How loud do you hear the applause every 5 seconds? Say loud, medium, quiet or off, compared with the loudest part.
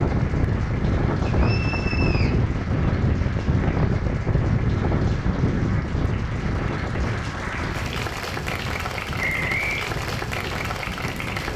medium, loud, loud.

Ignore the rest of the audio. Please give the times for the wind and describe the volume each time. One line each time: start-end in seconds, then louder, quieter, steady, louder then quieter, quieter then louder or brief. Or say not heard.
0.0-11.5 quieter.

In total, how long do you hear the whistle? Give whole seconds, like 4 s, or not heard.
2 s.